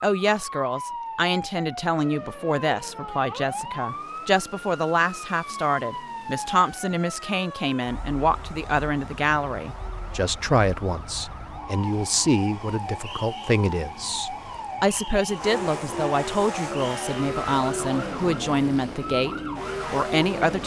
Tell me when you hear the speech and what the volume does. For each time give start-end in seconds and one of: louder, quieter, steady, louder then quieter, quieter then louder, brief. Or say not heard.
0.0-20.6 steady.